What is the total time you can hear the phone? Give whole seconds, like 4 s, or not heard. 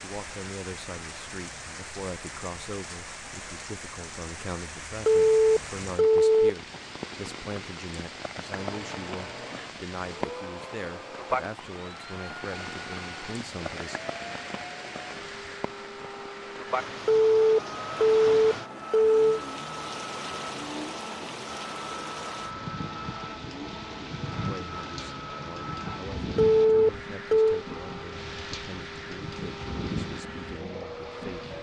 5 s.